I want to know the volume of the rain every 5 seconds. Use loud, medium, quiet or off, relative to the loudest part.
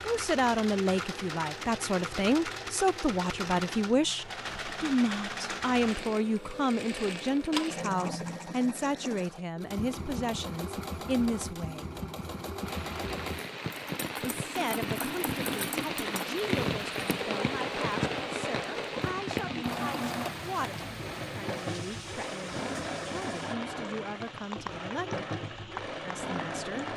off, off, loud, loud, medium, medium.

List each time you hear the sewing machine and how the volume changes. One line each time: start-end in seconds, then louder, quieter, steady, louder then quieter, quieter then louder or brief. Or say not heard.
0.0-26.9 steady.